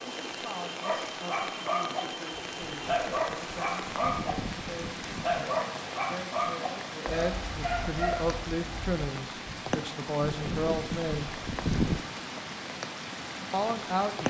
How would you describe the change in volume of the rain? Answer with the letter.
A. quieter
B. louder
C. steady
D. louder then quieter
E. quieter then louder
C.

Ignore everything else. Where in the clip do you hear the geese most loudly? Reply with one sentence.
The loudest moment of the geese is at 12 seconds.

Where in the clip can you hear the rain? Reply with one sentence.
The rain can be heard from 0.0 to 14.2 s.